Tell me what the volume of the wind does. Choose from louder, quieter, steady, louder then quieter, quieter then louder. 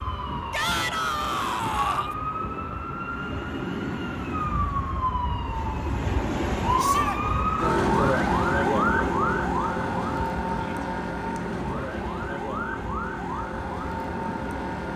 louder then quieter.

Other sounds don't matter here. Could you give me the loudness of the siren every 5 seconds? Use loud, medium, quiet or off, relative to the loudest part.
medium, loud, medium.